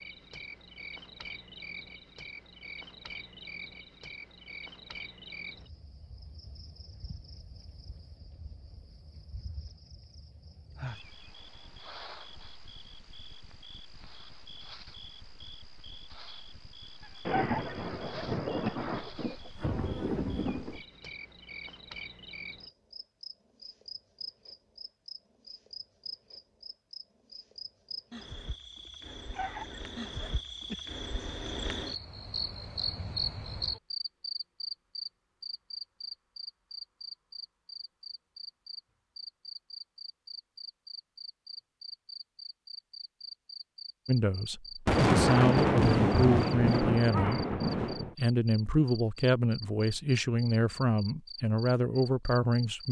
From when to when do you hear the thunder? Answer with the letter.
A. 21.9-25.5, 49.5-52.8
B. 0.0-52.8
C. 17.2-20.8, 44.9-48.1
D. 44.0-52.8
C.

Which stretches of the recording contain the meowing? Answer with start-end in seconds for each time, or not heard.
not heard.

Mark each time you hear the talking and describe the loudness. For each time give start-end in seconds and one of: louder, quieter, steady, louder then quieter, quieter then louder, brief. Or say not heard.
44.0-52.8 steady.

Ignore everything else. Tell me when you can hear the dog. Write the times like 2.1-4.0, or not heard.
17.0-19.0, 29.3-30.9.